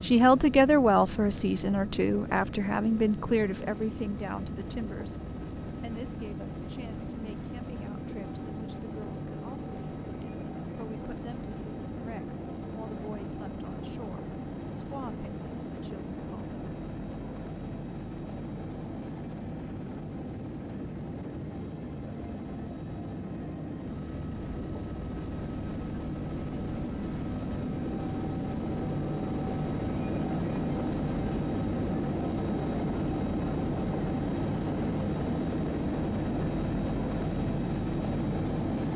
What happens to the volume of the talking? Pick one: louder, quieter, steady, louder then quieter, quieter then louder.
quieter.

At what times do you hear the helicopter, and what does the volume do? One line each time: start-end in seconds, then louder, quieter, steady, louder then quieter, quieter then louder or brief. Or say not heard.
0.0-38.9 louder.